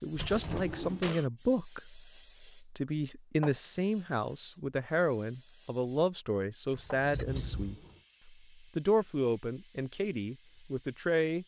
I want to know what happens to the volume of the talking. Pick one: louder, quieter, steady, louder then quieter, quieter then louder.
steady.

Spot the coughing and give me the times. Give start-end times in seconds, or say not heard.
0.2-1.2, 7.1-7.8.